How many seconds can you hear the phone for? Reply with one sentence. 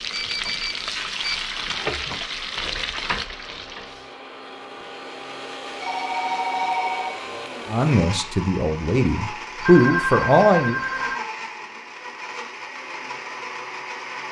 You can hear the phone for 4 seconds altogether.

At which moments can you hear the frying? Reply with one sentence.
You can hear the frying from 0.0 to 4.2 s.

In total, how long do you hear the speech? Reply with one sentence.
You can hear the speech for 3 seconds altogether.